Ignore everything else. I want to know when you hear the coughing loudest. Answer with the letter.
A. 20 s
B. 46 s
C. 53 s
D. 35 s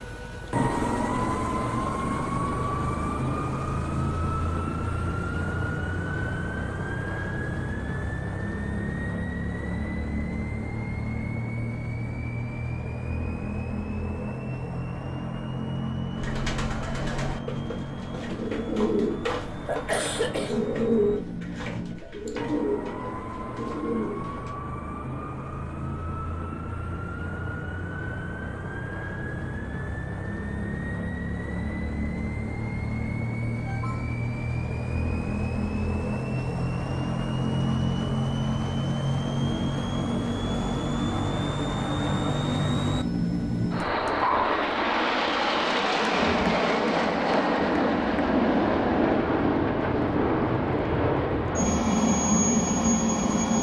A.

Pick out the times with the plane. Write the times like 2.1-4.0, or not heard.
0.0-53.5.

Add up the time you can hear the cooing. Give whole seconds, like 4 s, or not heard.
8 s.